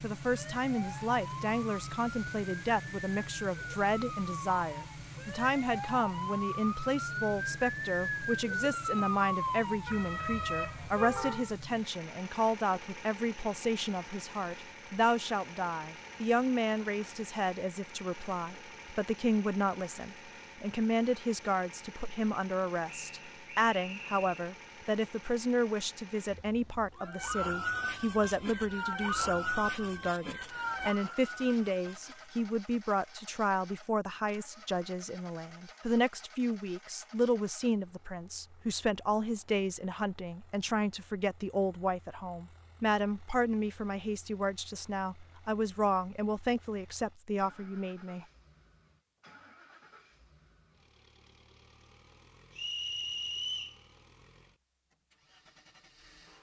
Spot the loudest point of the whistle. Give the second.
53 s.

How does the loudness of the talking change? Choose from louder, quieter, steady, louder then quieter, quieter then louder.
steady.